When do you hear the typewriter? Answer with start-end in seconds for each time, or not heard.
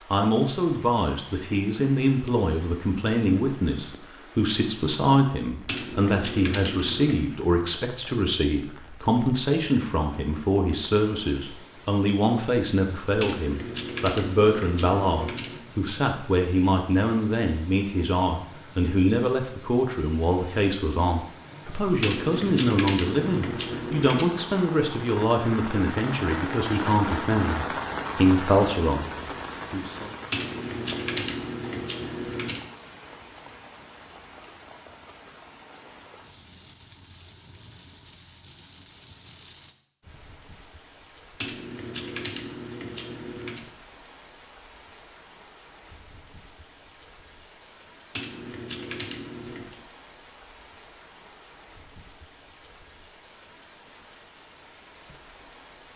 5.7-7.2, 13.2-15.6, 22.0-24.2, 30.3-32.6, 41.4-43.6, 48.1-49.8.